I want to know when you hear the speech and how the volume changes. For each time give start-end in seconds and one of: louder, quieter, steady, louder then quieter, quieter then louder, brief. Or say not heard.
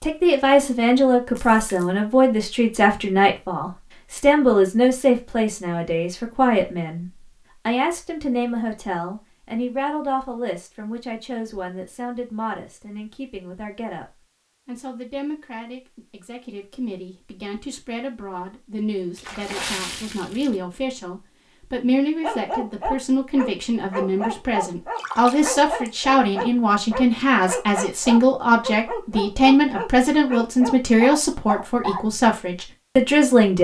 0.0-33.6 quieter then louder.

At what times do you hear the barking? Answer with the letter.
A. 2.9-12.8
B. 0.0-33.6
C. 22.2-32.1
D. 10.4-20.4
C.